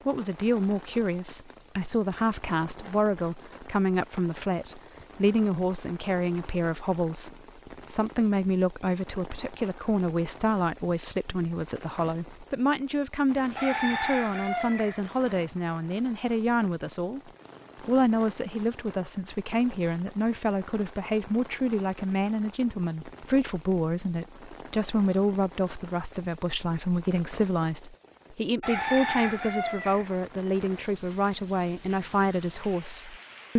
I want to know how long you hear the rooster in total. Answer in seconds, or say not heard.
3 s.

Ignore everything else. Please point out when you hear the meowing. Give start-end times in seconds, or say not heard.
not heard.